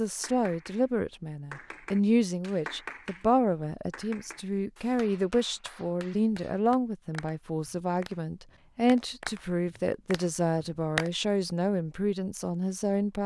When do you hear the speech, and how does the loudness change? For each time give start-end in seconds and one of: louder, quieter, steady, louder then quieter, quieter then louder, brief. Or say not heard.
0.0-13.2 steady.